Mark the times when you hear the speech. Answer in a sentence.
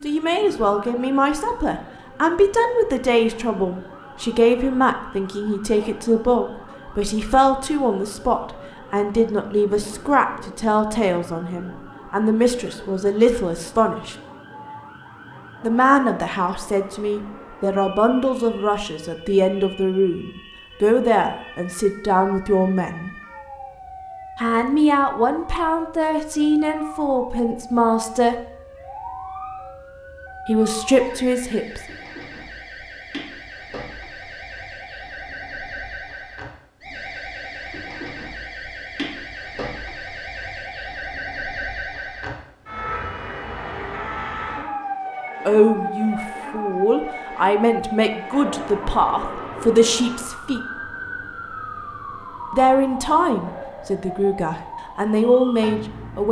The speech can be heard from 0.0 to 14.2 s, from 15.6 to 23.1 s, from 24.4 to 28.4 s, from 30.4 to 31.8 s, from 45.5 to 50.6 s and from 52.5 to 56.2 s.